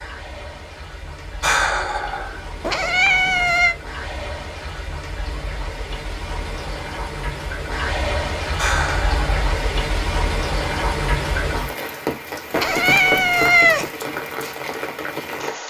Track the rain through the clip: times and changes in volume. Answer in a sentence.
You can hear the rain from 0.0 to 15.6 s, getting louder.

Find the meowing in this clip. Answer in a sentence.
The meowing can be heard from 2.6 to 3.8 s and from 12.5 to 13.9 s.